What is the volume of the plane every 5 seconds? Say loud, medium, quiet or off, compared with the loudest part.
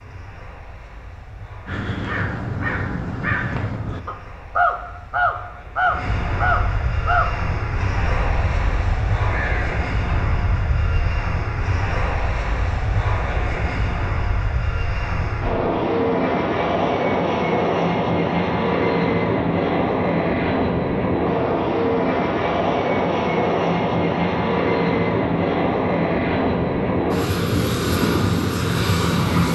quiet, medium, medium, loud, loud, loud.